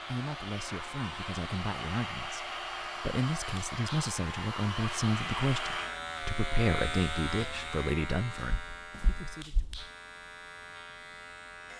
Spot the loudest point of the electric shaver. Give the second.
7 s.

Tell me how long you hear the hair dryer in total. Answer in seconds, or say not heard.
6 s.